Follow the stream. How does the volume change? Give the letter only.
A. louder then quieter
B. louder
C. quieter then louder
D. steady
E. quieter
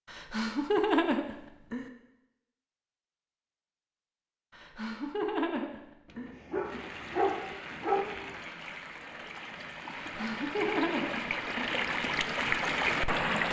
B.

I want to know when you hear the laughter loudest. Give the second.
1 s.